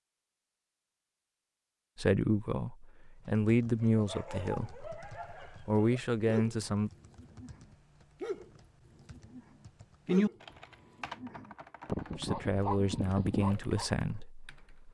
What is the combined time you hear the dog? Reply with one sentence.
You can hear the dog for 10 seconds altogether.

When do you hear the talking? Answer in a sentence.
You can hear the talking from 1.9 to 6.9 s and from 12.2 to 14.8 s.